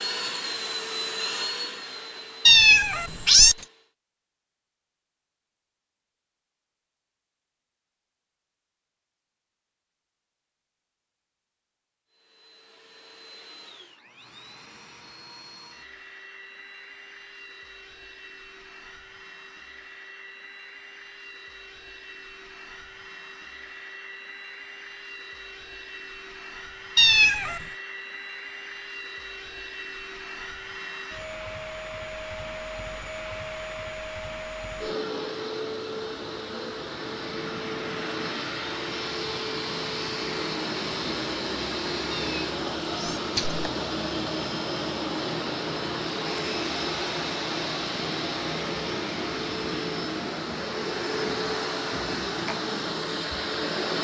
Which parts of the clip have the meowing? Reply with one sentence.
You can hear the meowing from 2.5 to 3.6 s, from 26.9 to 27.6 s and from 42.1 to 43.6 s.